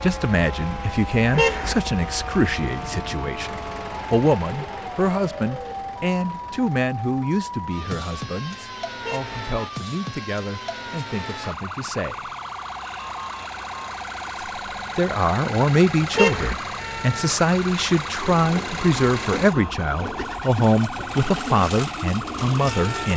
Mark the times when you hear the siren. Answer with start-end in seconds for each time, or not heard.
0.0-23.1.